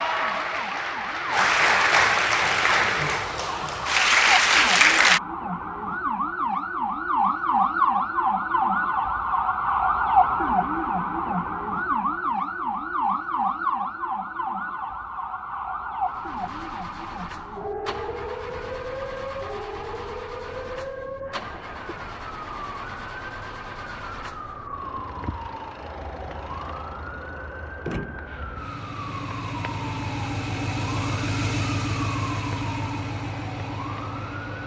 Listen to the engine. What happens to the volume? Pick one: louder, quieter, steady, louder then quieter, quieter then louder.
louder.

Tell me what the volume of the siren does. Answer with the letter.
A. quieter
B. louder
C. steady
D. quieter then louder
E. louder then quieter
E.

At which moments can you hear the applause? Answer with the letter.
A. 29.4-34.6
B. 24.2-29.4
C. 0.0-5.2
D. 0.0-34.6
C.